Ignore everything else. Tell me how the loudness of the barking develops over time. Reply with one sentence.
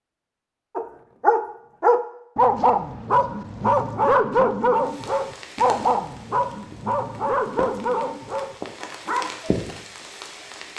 The volume of the barking goes down.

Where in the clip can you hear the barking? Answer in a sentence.
The barking can be heard from 0.8 to 9.6 s.